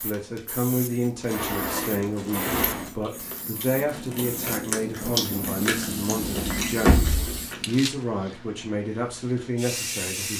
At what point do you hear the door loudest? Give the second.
7 s.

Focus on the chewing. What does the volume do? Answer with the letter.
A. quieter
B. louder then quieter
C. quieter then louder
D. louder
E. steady
D.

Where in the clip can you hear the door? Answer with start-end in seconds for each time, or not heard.
1.3-2.9, 6.2-7.4.